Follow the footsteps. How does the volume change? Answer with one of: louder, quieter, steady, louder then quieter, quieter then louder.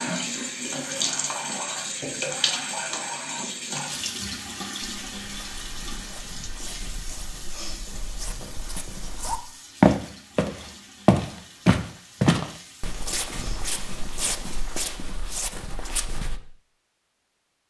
louder then quieter.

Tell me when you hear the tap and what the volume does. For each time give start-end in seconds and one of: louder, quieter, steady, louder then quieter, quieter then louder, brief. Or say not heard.
0.0-14.9 quieter.